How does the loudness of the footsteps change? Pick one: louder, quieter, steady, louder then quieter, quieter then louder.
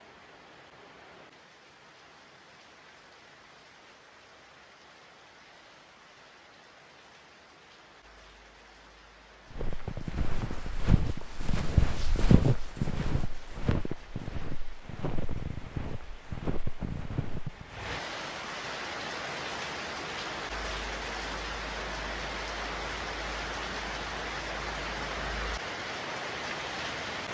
louder then quieter.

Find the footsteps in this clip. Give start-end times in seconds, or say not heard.
9.5-17.6.